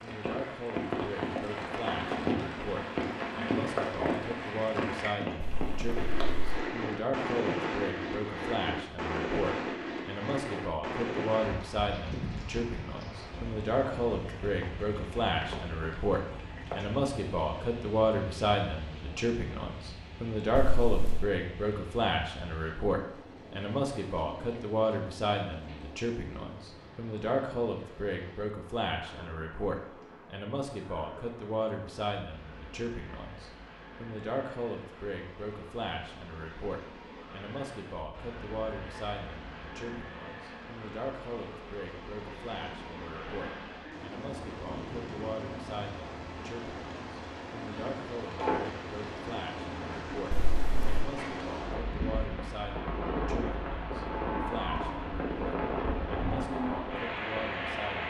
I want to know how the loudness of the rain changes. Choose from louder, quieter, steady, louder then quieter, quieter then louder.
quieter then louder.